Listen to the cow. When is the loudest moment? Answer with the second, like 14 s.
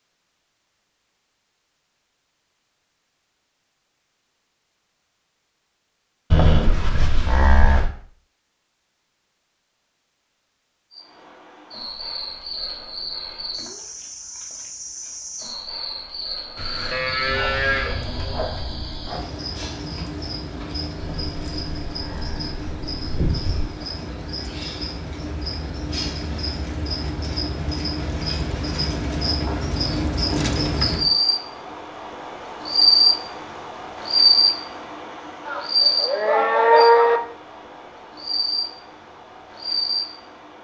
37 s.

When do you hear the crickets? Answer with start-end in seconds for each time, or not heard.
10.9-40.5.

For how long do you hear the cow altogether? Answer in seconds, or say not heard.
8 s.